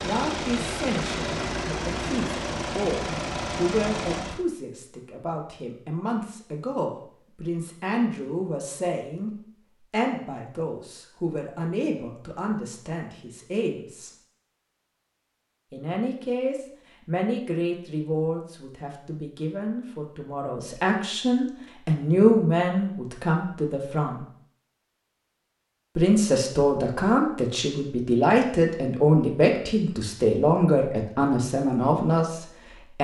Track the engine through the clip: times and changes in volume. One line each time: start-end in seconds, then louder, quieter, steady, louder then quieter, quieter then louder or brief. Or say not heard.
0.0-4.5 steady.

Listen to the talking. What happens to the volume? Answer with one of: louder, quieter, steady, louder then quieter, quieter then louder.
louder.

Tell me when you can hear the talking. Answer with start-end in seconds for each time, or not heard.
0.0-14.1, 15.7-24.2, 25.9-32.9.